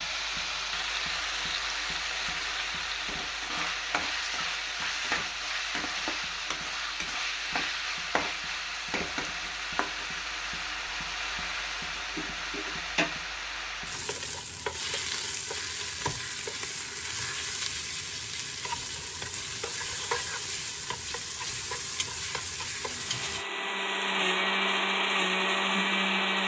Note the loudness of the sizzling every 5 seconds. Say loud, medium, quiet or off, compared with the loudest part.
loud, loud, loud, loud, loud, off.